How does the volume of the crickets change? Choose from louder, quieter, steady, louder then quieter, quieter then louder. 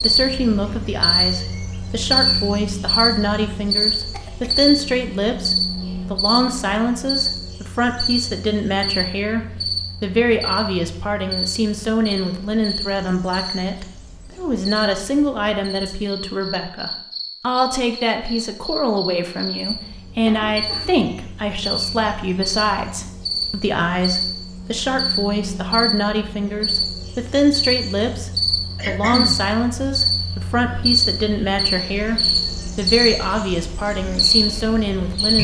quieter then louder.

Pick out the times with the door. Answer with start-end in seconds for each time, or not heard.
not heard.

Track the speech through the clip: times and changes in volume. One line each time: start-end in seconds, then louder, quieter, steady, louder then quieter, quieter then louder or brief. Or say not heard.
0.0-35.3 steady.